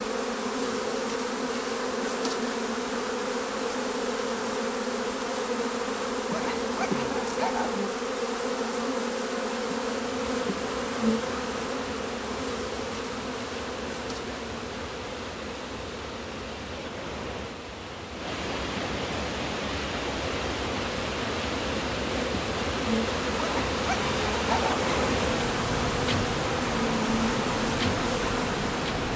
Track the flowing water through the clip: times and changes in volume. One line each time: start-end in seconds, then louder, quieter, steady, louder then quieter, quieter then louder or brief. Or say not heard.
9.9-29.1 louder.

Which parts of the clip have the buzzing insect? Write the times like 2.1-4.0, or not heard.
0.0-29.1.